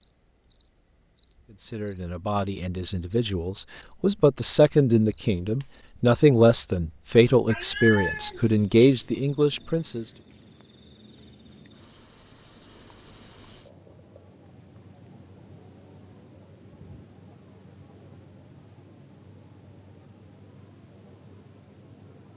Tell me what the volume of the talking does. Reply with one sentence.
The volume of the talking goes up.